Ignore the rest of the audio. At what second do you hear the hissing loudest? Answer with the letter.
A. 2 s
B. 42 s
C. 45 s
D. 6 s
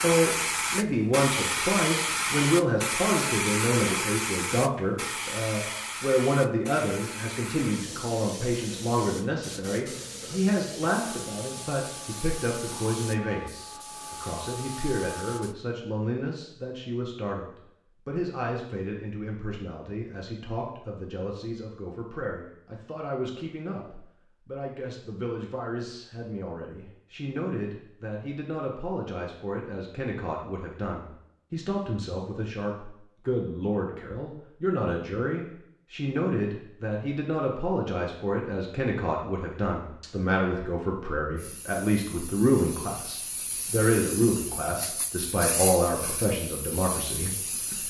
A.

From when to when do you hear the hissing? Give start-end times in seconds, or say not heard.
0.0-15.6, 41.4-47.8.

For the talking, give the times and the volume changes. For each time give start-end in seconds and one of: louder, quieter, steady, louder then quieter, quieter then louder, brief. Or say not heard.
0.0-47.8 quieter then louder.